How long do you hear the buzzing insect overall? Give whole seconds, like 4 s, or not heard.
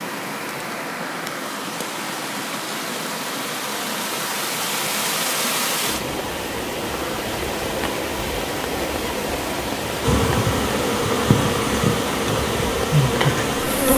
4 s.